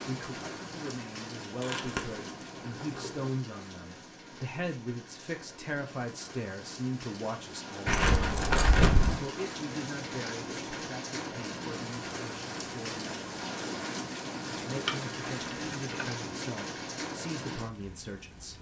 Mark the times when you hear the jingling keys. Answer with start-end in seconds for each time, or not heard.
1.6-3.3, 7.8-9.2, 14.8-16.2.